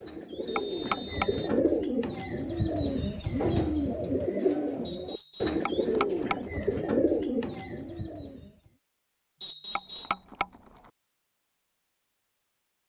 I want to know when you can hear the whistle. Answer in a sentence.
The whistle can be heard from 0.5 to 1.3 s, from 4.8 to 5.6 s and from 9.4 to 10.2 s.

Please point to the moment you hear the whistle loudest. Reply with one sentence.
The loudest moment of the whistle is at 10 seconds.